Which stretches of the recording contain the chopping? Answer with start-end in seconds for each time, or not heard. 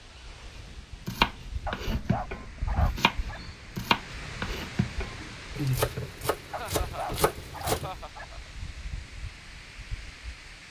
0.6-8.0.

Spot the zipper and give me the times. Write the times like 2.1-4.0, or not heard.
not heard.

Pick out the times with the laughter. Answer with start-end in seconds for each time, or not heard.
1.9-2.7, 6.5-8.5.